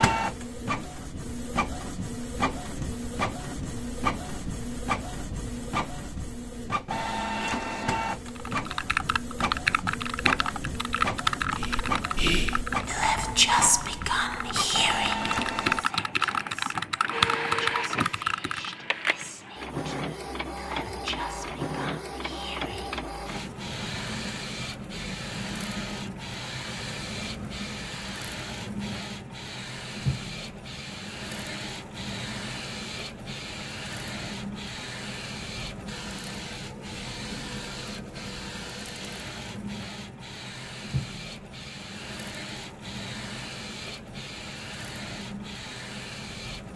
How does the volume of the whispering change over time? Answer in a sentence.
The loudness of the whispering goes down.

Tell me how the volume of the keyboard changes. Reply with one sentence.
The volume of the keyboard goes down, then up.